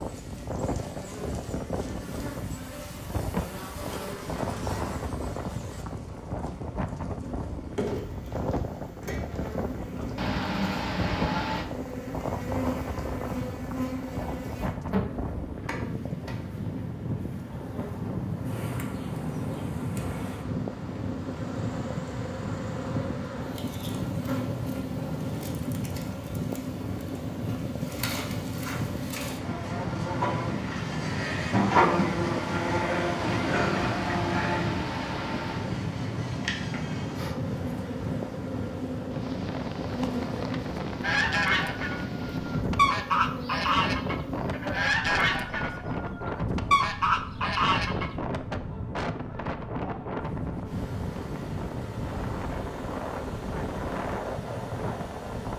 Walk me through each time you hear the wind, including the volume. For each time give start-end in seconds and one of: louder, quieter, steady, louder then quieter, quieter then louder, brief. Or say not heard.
0.0-55.5 steady.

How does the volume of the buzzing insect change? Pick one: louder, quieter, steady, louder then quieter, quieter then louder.
louder then quieter.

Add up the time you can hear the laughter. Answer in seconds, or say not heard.
4 s.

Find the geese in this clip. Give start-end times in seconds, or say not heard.
41.0-48.1.